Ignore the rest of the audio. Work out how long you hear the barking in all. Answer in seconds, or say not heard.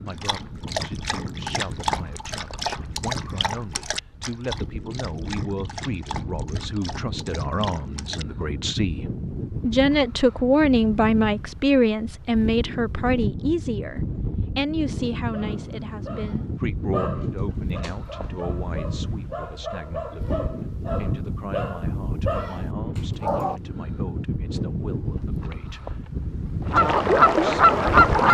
17 s.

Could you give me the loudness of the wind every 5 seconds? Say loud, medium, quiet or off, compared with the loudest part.
medium, loud, loud, loud, loud, loud.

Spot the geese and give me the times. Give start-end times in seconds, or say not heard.
26.6-28.2.